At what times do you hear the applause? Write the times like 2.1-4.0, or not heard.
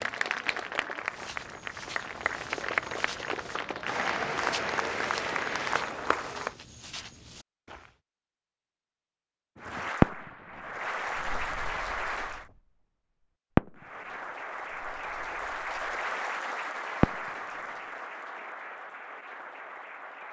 0.0-6.5, 9.6-12.4, 13.8-20.2.